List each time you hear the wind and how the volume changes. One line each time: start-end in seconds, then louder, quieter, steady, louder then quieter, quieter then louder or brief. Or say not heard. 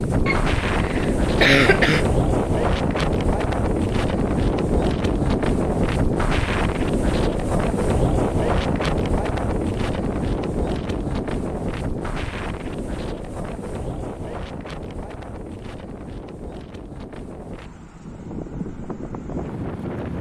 0.0-20.1 quieter.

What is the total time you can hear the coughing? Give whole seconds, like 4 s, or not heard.
2 s.